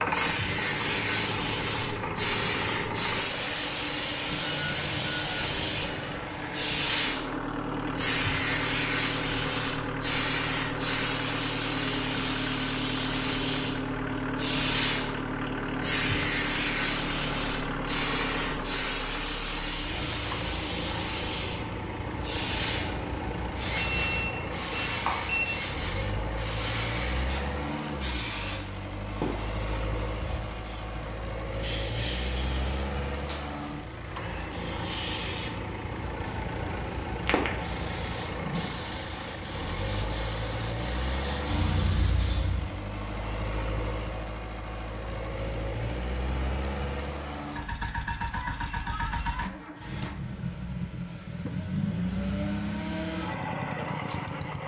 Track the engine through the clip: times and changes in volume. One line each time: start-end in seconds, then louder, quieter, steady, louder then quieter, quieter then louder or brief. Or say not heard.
0.0-54.6 steady.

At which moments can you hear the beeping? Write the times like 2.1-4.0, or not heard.
4.4-6.2, 23.8-25.6, 41.6-42.6.